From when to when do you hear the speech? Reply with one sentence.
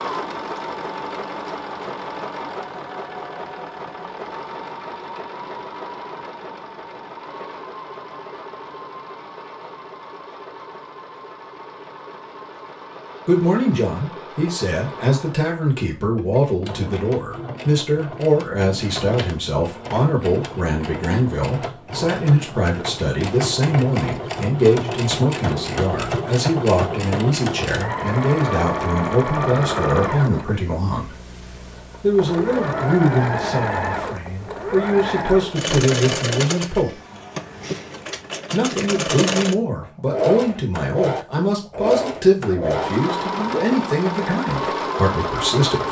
The speech can be heard from 13.2 to 31.1 s, from 32.0 to 37.0 s and from 38.5 to 45.8 s.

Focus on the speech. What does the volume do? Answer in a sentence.
The loudness of the speech stays about the same.